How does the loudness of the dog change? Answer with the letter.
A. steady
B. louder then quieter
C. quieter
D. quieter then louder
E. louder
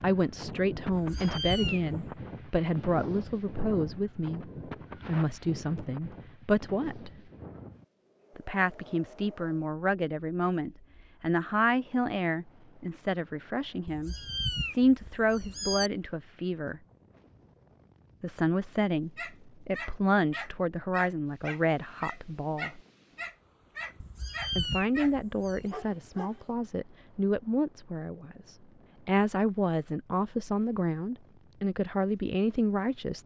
A.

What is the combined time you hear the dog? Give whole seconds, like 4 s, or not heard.
7 s.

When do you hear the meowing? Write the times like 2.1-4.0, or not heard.
0.9-1.9, 13.8-15.9, 24.0-25.6.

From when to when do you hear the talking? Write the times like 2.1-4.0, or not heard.
0.0-7.1, 8.3-16.8, 18.2-22.8, 24.6-33.2.